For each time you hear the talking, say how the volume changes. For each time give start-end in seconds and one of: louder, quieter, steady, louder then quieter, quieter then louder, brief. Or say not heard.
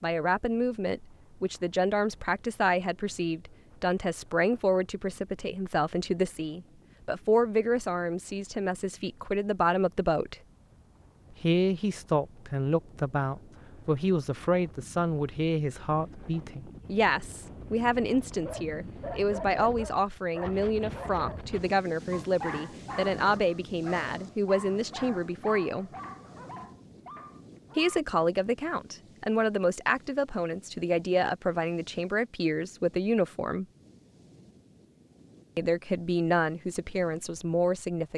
0.0-10.3 steady
11.3-25.9 steady
27.8-33.6 steady
35.5-38.1 brief.